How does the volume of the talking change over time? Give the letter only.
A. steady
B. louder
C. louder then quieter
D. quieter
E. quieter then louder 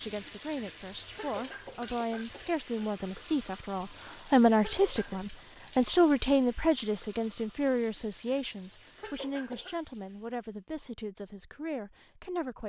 C.